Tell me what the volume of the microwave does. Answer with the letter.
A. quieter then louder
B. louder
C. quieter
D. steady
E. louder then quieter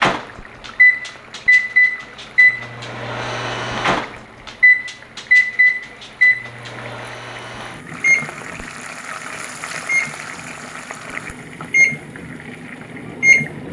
C.